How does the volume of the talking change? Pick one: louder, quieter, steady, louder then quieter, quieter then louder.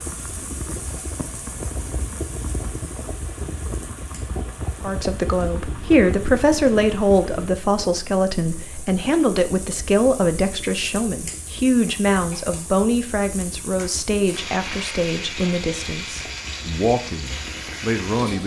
quieter.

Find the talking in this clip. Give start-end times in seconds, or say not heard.
4.8-18.4.